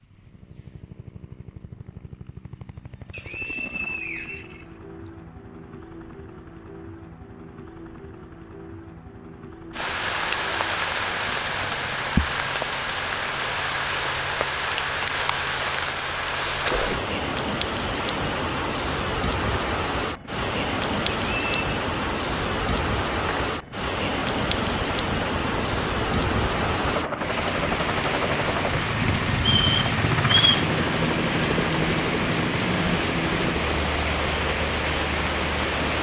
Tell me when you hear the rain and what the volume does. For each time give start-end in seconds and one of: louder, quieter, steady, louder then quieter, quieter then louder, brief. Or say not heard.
9.7-35.9 steady.